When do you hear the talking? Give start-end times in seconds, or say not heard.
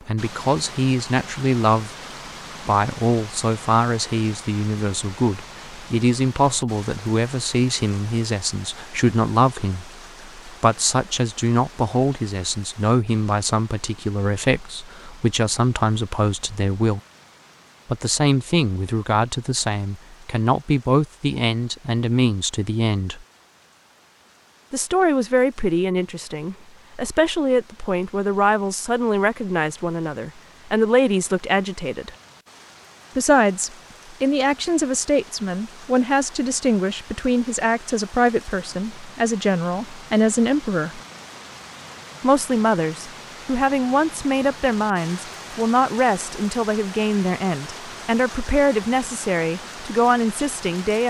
0.1-1.9, 2.6-17.0, 17.9-23.2, 24.7-32.1, 33.1-41.0, 42.2-51.0.